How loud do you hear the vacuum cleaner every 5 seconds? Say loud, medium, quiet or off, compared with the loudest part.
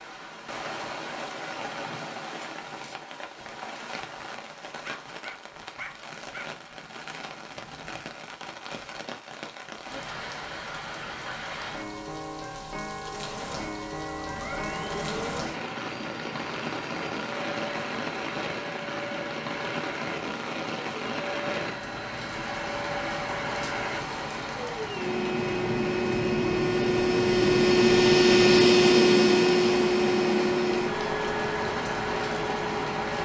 off, off, quiet, quiet, quiet, loud, medium.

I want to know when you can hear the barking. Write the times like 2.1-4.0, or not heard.
4.8-6.5.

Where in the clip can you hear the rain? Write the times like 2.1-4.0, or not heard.
0.0-33.2.